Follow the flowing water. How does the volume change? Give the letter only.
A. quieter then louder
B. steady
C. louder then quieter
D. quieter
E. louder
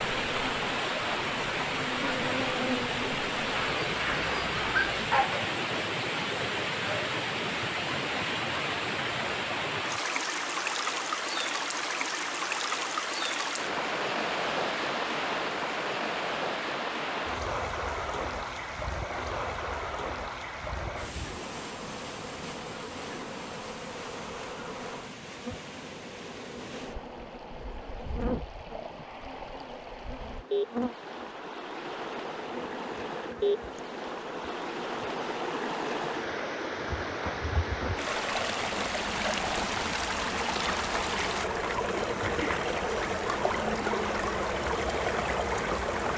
A.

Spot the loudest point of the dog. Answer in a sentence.
The volume of the dog peaks at 5 seconds.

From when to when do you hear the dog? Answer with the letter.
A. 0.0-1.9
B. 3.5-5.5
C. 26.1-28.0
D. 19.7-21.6
B.